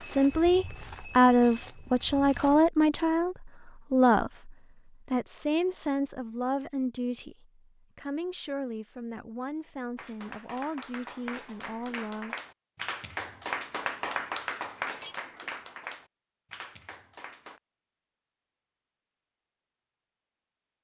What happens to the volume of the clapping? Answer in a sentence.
The volume of the clapping goes up, then down.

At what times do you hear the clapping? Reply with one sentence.
You can hear the clapping from 9.9 to 17.6 s.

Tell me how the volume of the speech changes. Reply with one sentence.
The volume of the speech goes down.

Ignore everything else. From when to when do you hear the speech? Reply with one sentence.
The speech can be heard from 0.0 to 12.3 s.